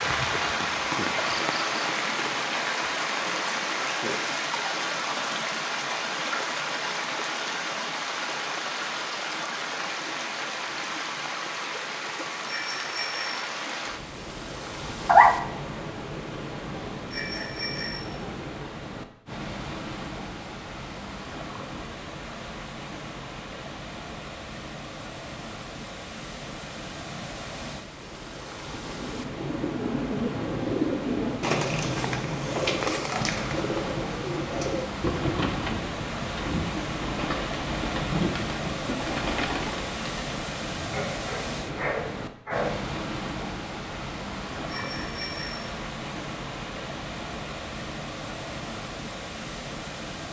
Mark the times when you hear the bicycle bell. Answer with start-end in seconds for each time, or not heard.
12.4-13.4, 17.1-18.1, 44.6-45.7.